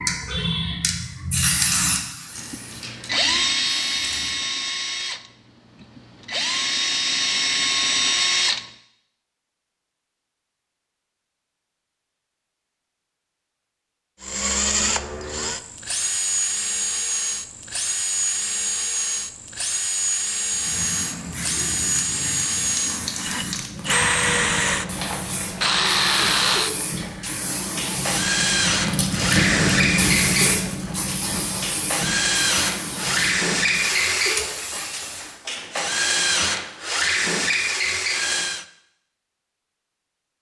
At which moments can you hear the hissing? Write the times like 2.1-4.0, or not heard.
0.0-4.4, 20.4-35.4.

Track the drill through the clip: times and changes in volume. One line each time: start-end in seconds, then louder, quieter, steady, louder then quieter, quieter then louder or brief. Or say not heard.
2.4-8.7 quieter then louder
14.2-38.6 steady.